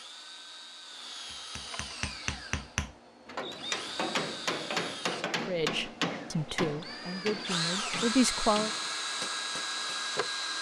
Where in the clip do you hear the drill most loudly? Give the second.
8 s.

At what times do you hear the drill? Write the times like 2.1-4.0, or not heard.
0.0-10.5.